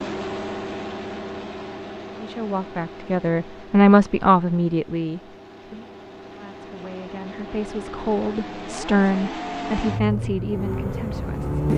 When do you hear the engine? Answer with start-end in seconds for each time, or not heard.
0.0-11.7.